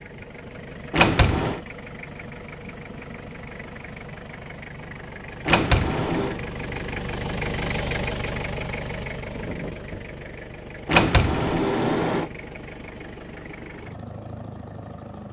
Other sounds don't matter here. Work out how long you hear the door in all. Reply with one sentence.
You can hear the door for 3 seconds altogether.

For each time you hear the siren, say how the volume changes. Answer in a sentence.
You can't hear the siren here.